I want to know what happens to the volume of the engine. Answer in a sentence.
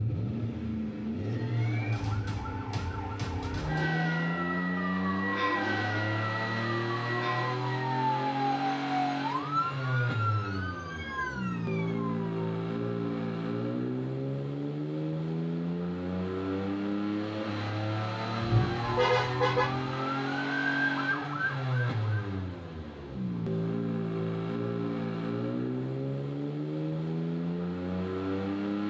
The loudness of the engine stays about the same.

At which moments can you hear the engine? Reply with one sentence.
The engine can be heard from 0.0 to 28.8 s.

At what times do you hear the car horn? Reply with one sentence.
The car horn can be heard from 18.4 to 19.9 s.